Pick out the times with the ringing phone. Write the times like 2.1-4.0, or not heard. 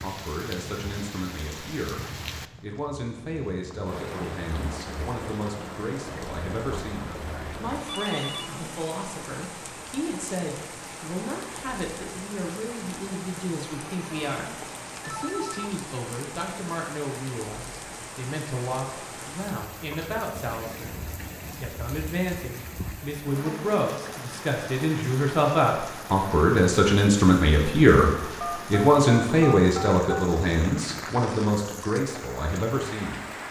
7.8-8.5, 14.6-15.7, 28.4-30.3.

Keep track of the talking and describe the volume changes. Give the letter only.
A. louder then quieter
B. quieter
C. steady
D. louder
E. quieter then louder
D.